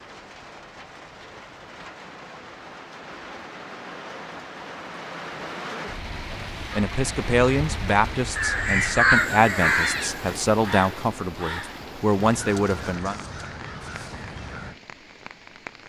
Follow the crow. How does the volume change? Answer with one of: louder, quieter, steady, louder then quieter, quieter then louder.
quieter.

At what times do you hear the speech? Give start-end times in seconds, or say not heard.
6.7-13.2.